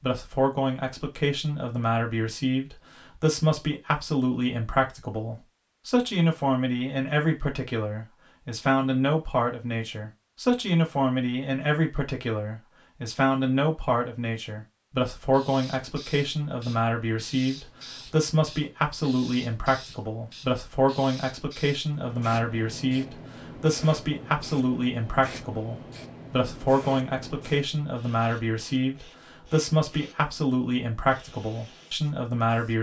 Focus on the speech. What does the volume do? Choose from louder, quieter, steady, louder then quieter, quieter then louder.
steady.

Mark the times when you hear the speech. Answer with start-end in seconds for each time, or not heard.
0.0-32.7.